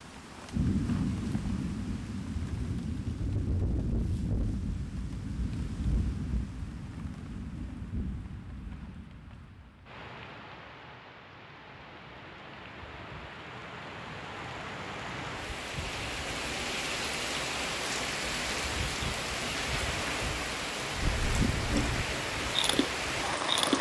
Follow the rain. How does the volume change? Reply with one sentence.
The volume of the rain goes down, then up.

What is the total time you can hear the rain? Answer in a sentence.
You can hear the rain for 24 seconds altogether.